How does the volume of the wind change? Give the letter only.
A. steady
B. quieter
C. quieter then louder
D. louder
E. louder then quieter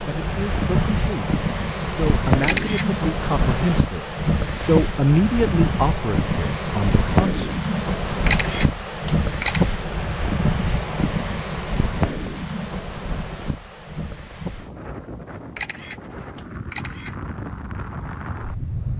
B.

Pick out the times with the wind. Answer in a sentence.
The wind can be heard from 0.0 to 18.9 s.